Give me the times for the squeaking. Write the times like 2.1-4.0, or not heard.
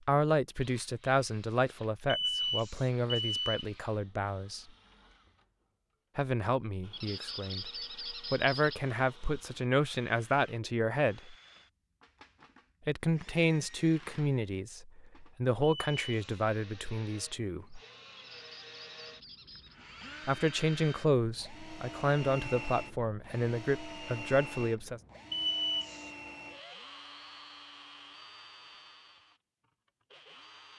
6.9-8.8, 18.1-19.8.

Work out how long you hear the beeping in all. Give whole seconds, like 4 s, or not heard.
3 s.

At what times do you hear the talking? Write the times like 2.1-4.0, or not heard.
0.1-4.7, 6.2-11.3, 12.8-17.8, 20.2-25.0.